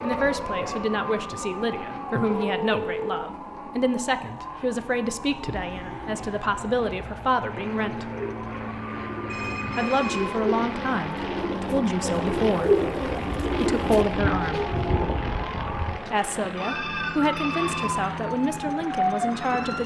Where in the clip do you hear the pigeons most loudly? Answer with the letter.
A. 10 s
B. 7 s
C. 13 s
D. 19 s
C.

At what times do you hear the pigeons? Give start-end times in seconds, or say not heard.
5.5-15.2.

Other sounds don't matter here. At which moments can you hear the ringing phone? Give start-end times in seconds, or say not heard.
2.4-3.2, 9.2-10.3, 16.6-17.9.